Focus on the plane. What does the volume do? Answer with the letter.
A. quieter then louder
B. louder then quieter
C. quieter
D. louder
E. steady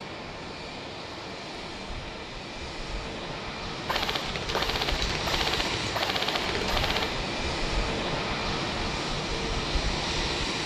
D.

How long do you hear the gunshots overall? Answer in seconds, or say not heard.
3 s.